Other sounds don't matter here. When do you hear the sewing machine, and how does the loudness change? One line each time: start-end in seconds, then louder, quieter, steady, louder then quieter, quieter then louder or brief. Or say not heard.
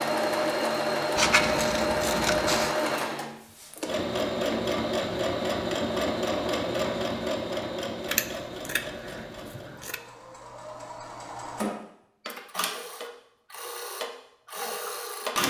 0.0-15.4 quieter.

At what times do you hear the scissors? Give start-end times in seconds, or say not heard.
1.1-2.8, 8.1-10.0.